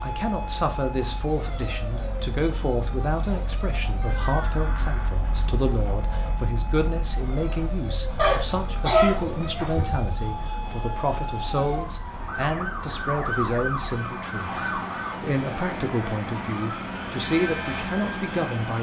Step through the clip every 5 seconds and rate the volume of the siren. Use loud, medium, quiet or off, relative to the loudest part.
medium, medium, loud, loud.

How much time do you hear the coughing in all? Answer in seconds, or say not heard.
2 s.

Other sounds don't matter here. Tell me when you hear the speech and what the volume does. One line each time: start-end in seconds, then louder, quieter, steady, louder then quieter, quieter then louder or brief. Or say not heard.
0.0-18.7 steady.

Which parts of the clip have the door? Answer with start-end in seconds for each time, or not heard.
4.0-5.1.